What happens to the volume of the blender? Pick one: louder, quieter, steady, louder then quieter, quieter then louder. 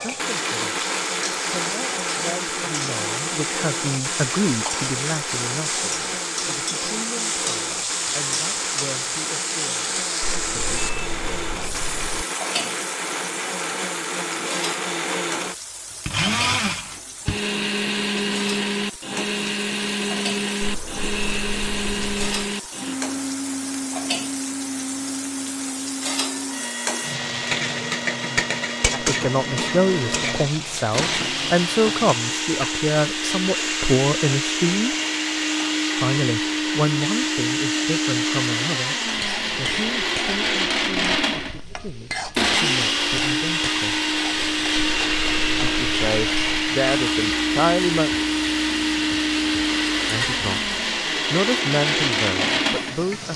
louder.